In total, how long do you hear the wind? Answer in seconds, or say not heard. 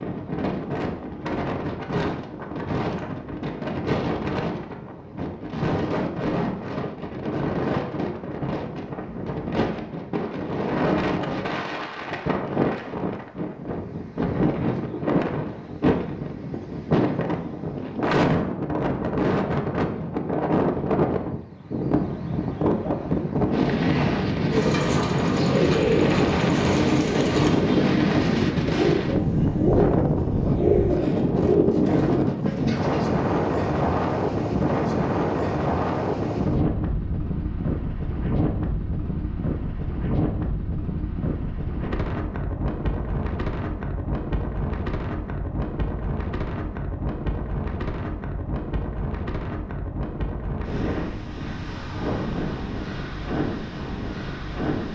55 s.